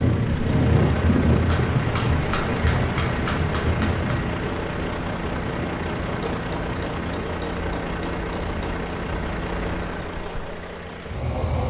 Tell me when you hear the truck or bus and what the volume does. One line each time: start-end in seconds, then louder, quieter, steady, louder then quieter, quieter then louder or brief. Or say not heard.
0.0-11.6 steady.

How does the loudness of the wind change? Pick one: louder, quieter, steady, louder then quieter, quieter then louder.
quieter.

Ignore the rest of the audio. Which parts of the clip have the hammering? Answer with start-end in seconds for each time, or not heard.
1.5-4.2, 6.3-8.9.